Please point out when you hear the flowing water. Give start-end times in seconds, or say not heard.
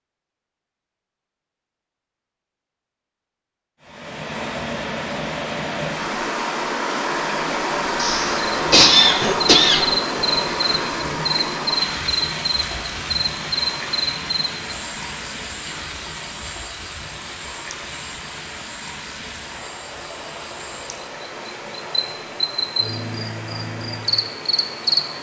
3.8-25.1.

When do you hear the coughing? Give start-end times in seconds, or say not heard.
8.0-9.8.